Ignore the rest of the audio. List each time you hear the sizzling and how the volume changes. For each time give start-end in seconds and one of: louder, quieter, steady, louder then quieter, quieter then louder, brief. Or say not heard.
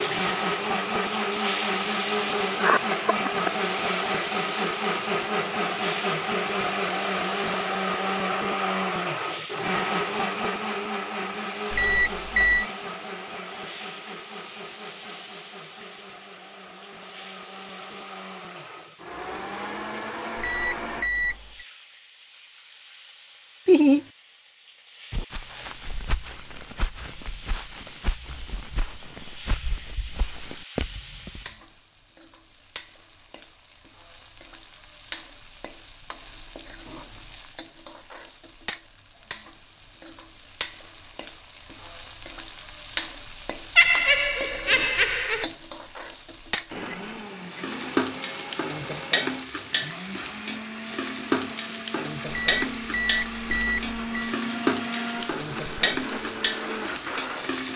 0.0-57.7 quieter then louder.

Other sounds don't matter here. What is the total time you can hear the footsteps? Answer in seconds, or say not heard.
6 s.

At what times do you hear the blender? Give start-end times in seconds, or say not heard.
0.0-21.1, 46.6-57.6.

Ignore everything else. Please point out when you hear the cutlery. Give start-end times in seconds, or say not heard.
not heard.